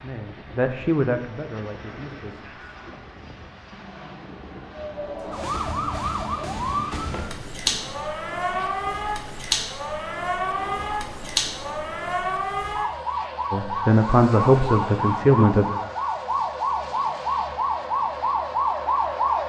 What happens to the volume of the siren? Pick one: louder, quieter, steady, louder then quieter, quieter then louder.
steady.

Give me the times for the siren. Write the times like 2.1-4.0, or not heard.
4.8-19.4.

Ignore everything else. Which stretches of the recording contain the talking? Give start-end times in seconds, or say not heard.
0.0-2.5, 13.5-15.7.